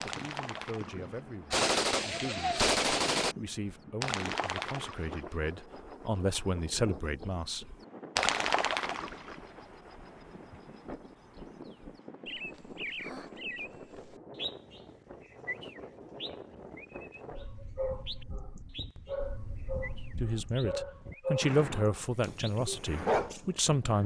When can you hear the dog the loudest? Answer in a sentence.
The loudest moment of the dog is at 23 seconds.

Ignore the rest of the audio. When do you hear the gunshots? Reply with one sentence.
You can hear the gunshots from 1.5 to 3.4 s.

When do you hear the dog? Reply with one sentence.
You can hear the dog from 17.3 to 23.4 s.